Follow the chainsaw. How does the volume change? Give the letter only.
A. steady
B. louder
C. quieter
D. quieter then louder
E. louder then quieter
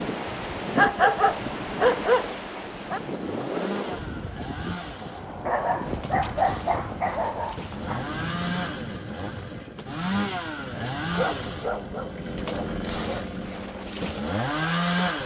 B.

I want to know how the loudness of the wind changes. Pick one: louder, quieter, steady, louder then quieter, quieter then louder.
quieter.